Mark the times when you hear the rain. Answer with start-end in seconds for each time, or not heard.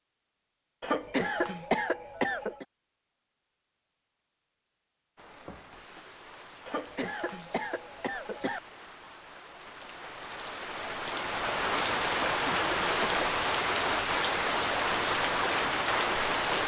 5.2-16.6.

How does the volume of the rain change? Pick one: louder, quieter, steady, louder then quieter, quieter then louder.
louder.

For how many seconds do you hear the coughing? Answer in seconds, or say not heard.
5 s.